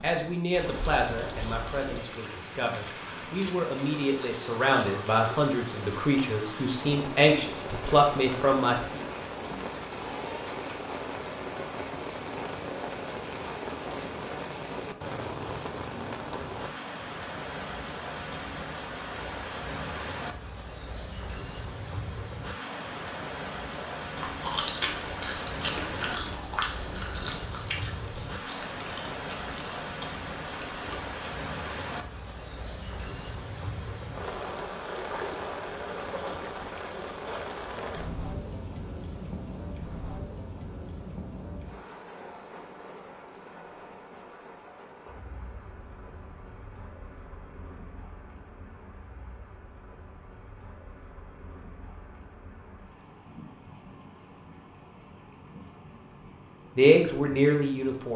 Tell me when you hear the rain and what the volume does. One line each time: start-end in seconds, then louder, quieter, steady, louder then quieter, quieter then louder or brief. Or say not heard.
0.0-58.1 quieter.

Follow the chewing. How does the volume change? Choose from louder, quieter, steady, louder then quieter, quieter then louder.
quieter.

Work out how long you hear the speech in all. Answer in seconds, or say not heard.
10 s.